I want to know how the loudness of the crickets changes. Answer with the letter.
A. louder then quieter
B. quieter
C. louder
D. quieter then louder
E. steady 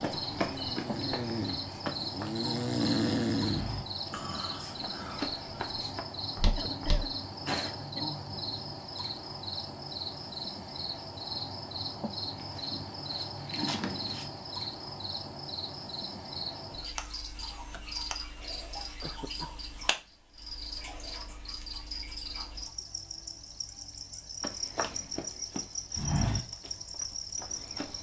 E.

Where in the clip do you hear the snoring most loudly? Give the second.
3 s.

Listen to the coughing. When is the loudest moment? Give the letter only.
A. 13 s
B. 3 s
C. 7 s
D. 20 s
C.